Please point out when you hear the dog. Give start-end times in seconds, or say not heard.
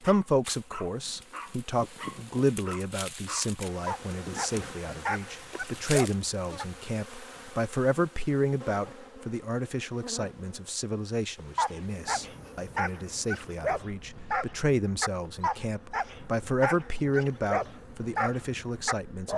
0.0-6.7, 11.3-19.3.